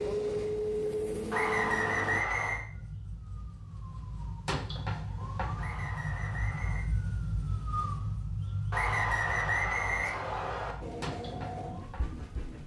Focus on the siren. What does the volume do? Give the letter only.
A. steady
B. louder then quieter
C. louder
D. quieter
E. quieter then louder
B.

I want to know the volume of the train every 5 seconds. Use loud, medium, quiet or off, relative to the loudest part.
loud, off, medium.